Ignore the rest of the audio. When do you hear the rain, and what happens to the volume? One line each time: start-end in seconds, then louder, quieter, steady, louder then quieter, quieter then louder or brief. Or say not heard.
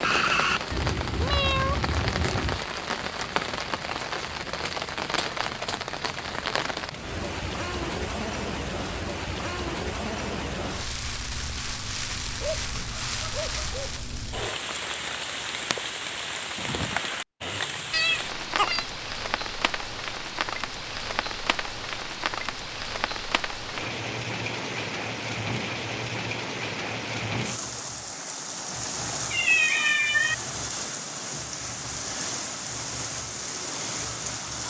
0.0-34.6 steady.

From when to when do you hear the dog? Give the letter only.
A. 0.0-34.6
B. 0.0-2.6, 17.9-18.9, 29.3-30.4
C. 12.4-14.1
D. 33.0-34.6
C.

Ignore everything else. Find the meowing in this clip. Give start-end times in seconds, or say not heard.
0.0-2.6, 17.9-18.9, 29.3-30.4.